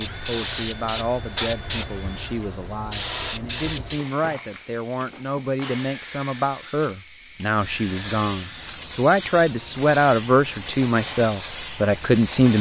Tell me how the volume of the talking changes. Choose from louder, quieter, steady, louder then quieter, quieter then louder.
louder.